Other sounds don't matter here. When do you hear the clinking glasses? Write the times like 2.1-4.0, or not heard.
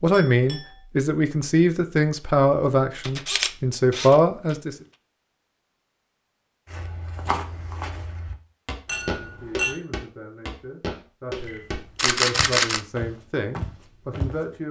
0.1-0.8, 8.8-9.8.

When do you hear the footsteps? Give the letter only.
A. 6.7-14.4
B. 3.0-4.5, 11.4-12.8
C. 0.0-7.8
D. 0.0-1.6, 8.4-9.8
A.